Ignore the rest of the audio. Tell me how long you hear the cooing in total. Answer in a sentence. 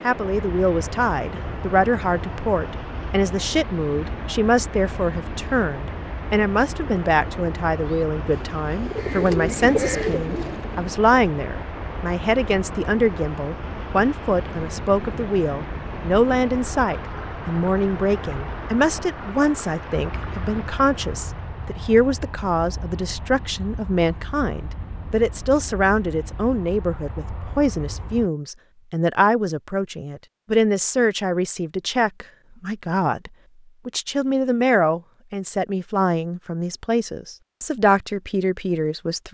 You can hear the cooing for 3 seconds altogether.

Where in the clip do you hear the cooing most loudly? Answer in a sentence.
The loudest moment of the cooing is at 10 seconds.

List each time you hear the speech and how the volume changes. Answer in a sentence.
You can hear the speech from 0.0 to 39.2 s, at a steady volume.